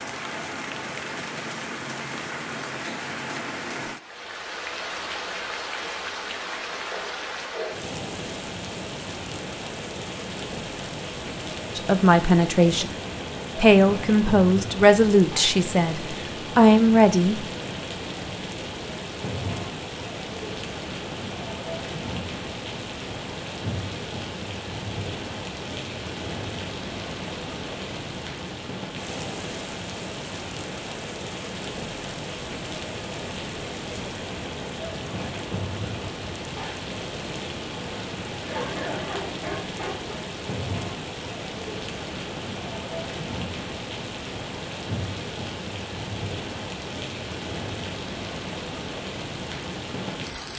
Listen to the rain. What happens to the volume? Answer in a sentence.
The volume of the rain stays about the same.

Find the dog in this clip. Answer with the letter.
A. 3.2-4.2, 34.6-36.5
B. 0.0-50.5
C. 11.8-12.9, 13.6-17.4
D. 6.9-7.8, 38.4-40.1
D.